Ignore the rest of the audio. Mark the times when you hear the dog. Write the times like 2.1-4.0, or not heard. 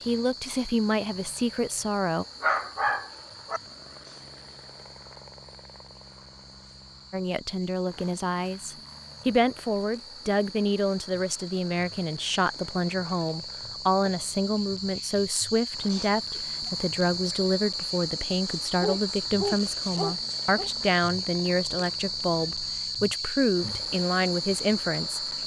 2.4-3.6, 18.8-20.7.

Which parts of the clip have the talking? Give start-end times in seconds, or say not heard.
0.1-2.2, 7.1-25.2.